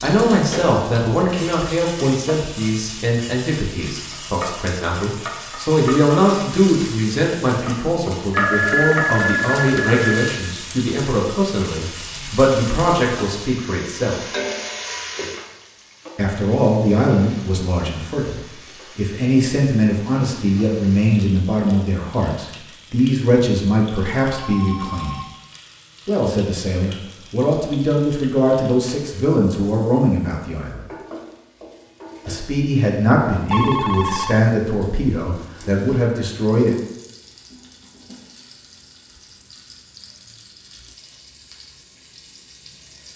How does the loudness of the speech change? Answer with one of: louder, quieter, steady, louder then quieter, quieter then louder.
steady.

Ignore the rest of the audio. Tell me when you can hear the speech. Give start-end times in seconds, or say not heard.
0.0-14.2, 16.1-25.1, 26.1-30.9, 32.2-36.8.